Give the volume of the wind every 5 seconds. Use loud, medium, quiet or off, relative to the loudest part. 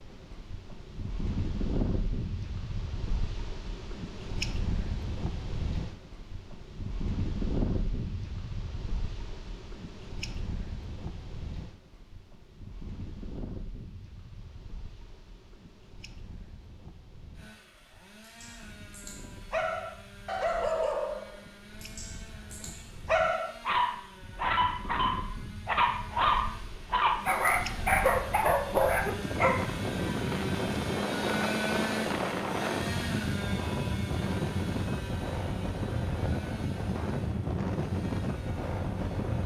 medium, medium, quiet, quiet, quiet, medium, loud, loud.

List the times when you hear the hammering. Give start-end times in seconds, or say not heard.
not heard.